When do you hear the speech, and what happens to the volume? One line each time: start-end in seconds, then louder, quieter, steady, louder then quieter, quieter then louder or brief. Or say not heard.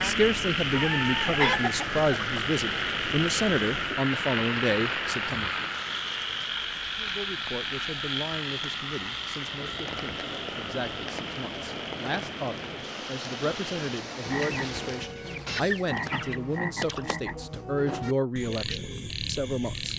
0.0-5.7 steady
7.0-19.9 louder.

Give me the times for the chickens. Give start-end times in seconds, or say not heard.
0.7-2.4, 14.6-16.4.